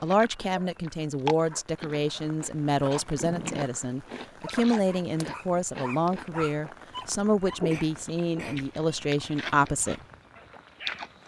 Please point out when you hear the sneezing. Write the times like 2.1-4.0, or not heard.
3.2-3.8, 7.6-8.7.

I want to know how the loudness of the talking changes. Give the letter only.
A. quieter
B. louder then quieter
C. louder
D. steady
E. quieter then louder
D.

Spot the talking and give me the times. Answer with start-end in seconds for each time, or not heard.
0.0-10.0.